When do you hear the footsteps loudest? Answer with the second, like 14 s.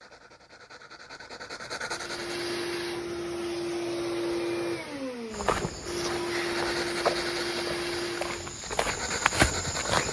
9 s.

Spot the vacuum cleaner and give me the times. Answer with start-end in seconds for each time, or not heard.
1.9-8.6.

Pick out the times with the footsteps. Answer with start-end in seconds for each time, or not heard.
5.3-10.0.